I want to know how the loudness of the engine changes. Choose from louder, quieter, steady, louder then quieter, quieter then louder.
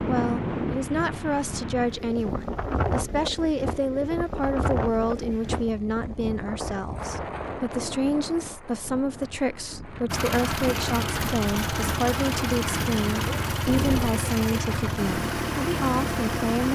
steady.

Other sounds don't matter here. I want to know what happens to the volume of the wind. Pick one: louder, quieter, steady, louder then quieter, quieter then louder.
quieter then louder.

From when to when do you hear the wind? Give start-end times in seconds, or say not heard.
0.0-14.2.